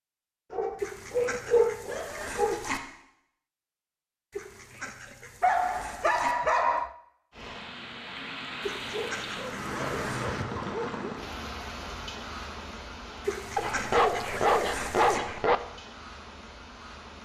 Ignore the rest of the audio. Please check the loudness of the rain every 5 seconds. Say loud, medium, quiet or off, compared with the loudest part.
off, loud, loud, medium.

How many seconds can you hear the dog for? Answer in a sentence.
You can hear the dog for 8 seconds altogether.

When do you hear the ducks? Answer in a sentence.
The ducks can be heard from 0.8 to 2.8 s, from 4.3 to 6.3 s, from 8.6 to 10.3 s and from 13.2 to 15.2 s.